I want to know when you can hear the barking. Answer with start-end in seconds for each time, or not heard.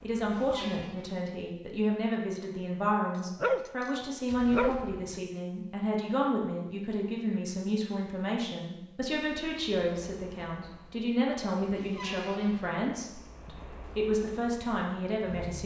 3.1-5.2.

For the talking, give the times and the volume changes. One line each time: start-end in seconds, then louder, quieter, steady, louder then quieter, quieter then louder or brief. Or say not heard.
0.0-15.6 steady.